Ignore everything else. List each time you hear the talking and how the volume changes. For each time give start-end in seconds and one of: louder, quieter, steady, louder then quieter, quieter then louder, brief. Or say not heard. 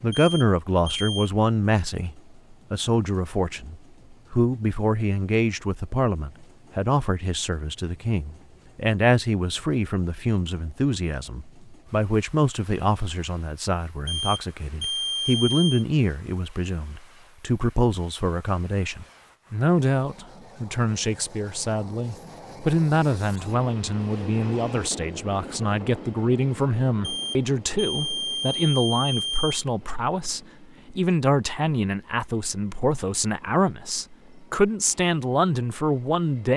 0.0-36.5 steady.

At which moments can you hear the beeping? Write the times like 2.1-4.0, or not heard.
0.1-1.3, 14.1-15.8, 27.0-29.6.